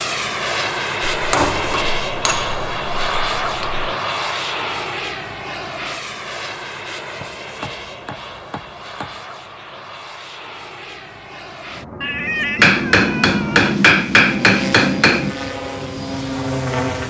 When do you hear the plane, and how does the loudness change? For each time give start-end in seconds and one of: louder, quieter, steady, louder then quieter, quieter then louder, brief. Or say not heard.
0.0-17.0 quieter then louder.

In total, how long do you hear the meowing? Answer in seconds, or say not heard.
2 s.